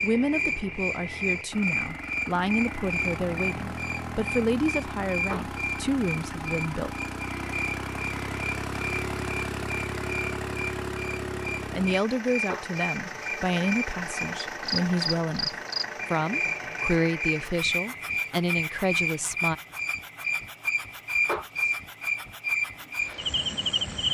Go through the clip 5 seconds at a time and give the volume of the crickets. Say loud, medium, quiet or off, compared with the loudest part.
loud, medium, medium, loud, loud.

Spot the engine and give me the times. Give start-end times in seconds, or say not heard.
0.0-24.1.